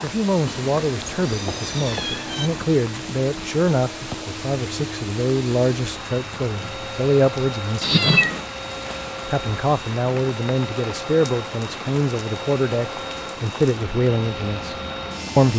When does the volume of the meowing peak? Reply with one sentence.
The volume of the meowing peaks at 8 seconds.